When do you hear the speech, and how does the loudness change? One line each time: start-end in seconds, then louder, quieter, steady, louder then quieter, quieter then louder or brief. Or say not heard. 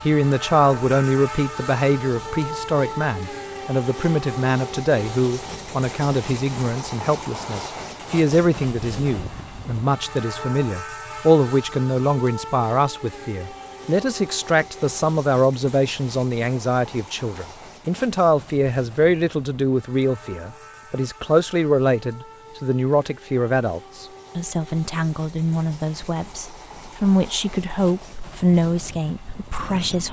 0.0-30.0 steady.